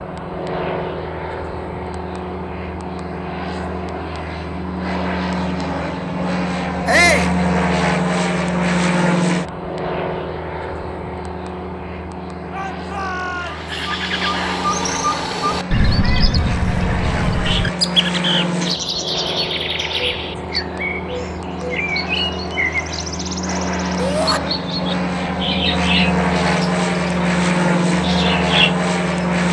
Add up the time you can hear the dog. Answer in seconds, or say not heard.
not heard.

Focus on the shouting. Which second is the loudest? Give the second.
7 s.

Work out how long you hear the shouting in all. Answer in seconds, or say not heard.
2 s.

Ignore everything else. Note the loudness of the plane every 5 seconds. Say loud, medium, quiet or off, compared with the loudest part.
medium, loud, medium, medium, medium, loud.